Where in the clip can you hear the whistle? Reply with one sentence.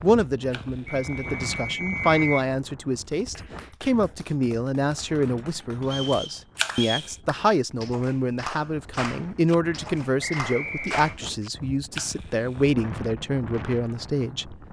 You can hear the whistle from 0.9 to 2.5 s, from 5.9 to 7.1 s and from 10.2 to 11.2 s.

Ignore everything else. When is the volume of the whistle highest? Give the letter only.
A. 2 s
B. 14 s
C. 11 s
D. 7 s
A.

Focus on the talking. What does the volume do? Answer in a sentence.
The loudness of the talking stays about the same.